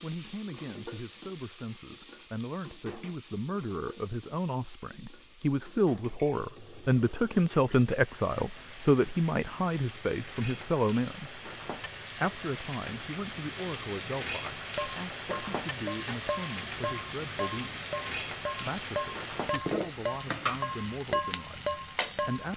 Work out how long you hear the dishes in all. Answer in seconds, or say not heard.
8 s.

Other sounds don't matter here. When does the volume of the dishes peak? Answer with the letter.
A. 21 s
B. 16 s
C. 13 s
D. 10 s
A.